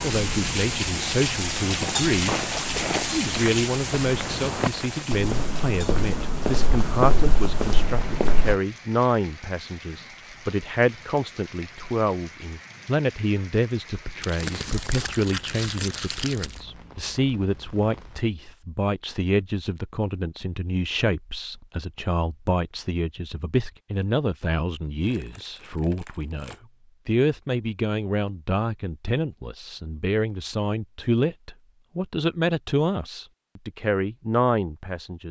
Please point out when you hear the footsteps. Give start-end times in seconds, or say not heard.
1.6-8.6.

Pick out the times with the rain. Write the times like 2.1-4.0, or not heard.
0.0-18.2.